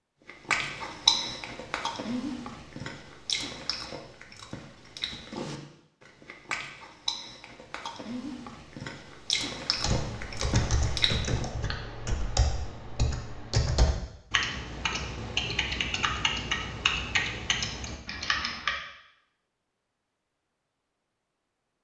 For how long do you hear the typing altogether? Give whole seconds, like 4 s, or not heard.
9 s.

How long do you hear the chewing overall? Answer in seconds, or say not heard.
11 s.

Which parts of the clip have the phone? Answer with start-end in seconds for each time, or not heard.
not heard.